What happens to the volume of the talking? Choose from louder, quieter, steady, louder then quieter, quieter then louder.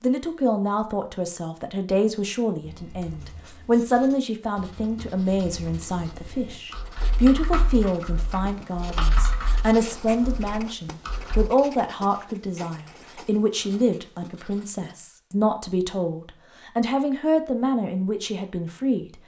steady.